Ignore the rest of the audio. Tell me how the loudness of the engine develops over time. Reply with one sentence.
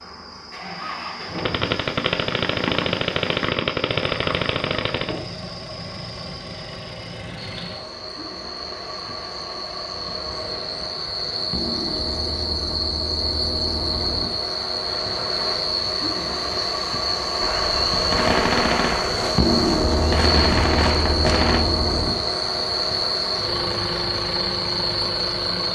The loudness of the engine goes up.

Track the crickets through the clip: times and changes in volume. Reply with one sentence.
The crickets can be heard from 0.0 to 25.7 s, getting louder.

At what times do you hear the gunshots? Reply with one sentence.
You can hear the gunshots from 1.4 to 5.2 s and from 17.4 to 21.6 s.